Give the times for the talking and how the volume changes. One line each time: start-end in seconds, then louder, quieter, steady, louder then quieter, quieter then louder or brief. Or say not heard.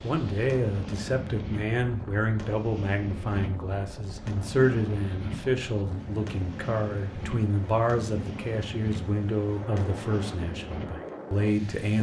0.0-11.9 steady.